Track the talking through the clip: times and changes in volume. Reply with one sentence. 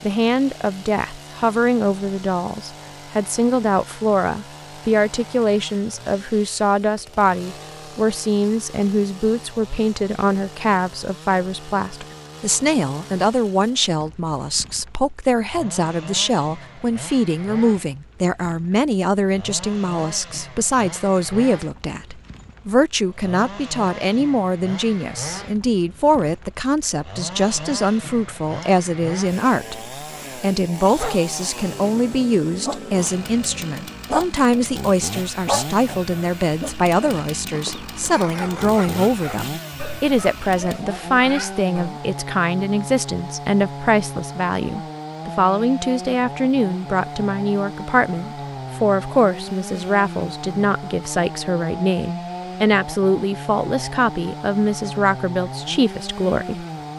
You can hear the talking from 0.0 to 56.6 s, at a steady volume.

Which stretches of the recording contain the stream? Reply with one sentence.
You can't hear the stream here.